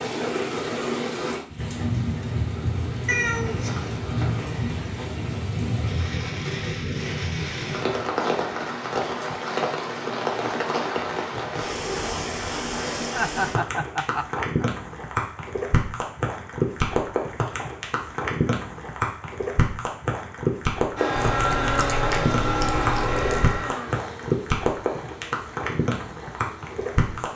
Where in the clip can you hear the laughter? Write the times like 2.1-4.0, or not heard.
13.1-14.7.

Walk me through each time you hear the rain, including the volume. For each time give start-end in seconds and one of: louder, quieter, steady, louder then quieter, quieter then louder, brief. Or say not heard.
0.0-27.3 steady.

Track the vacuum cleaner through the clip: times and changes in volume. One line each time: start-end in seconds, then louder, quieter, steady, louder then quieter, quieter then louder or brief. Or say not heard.
20.9-27.3 quieter.